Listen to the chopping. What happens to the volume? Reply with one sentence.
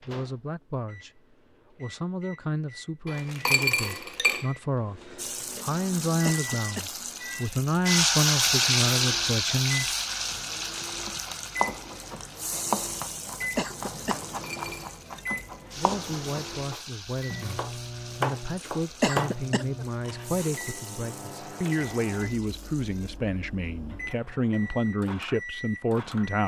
The volume of the chopping goes down, then up.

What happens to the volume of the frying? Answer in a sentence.
The loudness of the frying goes down.